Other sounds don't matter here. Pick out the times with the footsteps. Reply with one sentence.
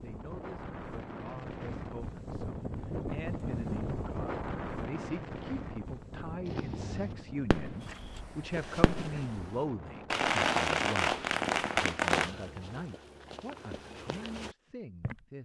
You can hear the footsteps from 7.8 to 9.5 s and from 12.1 to 15.2 s.